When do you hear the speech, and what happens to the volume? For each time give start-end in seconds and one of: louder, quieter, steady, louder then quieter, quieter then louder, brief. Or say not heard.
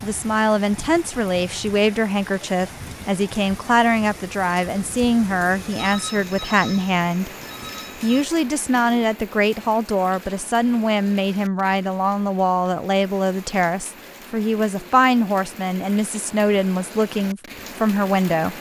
0.0-18.5 steady.